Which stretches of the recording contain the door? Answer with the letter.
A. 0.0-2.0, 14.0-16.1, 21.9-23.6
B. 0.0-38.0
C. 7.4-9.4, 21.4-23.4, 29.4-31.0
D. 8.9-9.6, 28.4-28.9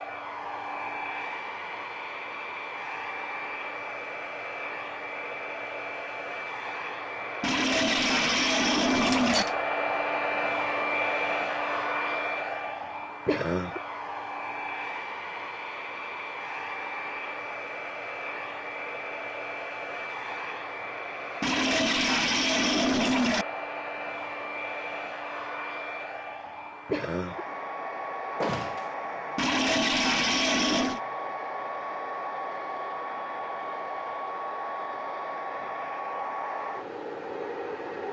D.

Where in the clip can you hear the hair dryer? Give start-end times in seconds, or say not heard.
0.0-38.0.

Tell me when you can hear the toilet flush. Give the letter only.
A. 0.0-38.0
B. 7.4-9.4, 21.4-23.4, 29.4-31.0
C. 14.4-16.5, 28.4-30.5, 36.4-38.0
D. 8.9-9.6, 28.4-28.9
B.